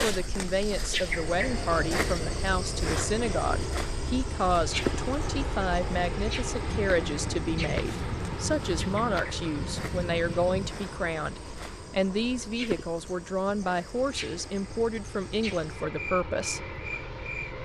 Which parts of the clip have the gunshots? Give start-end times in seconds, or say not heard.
6.7-10.7.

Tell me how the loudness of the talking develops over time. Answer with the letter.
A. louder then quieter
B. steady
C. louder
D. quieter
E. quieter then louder
B.